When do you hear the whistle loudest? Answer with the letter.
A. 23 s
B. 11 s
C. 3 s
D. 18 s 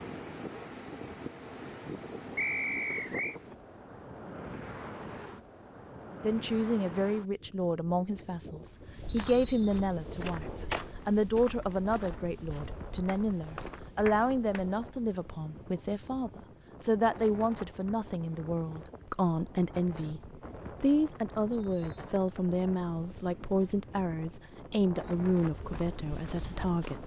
C.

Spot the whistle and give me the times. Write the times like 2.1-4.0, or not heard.
2.4-3.4, 9.1-9.8, 21.5-21.9.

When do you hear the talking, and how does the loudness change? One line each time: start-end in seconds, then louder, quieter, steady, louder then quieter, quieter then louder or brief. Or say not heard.
6.2-27.0 steady.